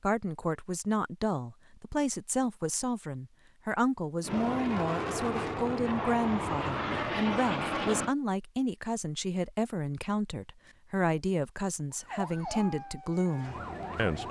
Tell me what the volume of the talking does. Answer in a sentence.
The loudness of the talking stays about the same.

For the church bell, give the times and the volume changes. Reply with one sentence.
The church bell can't be heard in this clip.